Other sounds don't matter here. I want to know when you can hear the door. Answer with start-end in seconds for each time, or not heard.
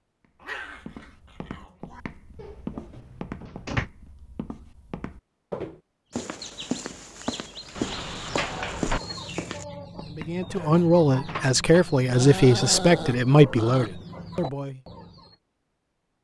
2.4-3.9, 7.8-9.0, 11.2-11.9.